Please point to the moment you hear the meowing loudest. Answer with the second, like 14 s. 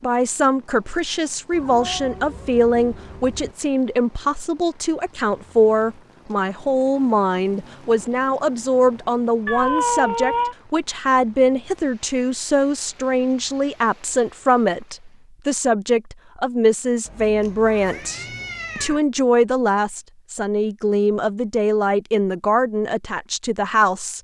10 s.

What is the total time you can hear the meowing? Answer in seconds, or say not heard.
5 s.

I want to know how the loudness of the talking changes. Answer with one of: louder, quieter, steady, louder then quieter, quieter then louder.
steady.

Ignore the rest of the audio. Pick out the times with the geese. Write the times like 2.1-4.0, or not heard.
not heard.